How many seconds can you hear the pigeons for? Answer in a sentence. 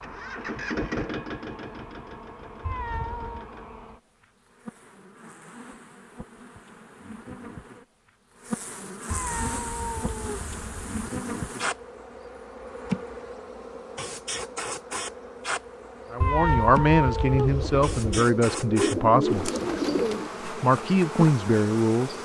You can hear the pigeons for 3 seconds altogether.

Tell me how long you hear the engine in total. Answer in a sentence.
The engine can be heard for 4 seconds in total.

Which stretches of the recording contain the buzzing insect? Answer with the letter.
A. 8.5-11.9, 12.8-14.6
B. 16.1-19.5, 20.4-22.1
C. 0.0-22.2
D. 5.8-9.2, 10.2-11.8
C.